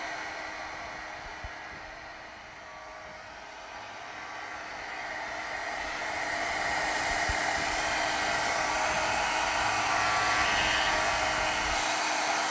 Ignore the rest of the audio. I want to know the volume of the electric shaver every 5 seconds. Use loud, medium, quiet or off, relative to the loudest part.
quiet, medium, loud.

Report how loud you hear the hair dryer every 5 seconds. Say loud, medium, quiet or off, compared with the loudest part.
quiet, loud, loud.